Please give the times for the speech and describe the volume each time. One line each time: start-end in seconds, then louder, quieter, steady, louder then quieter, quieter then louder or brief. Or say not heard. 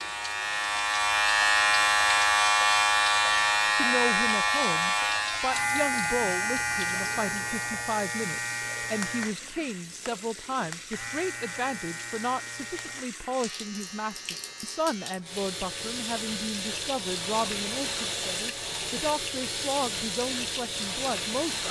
3.6-21.6 steady.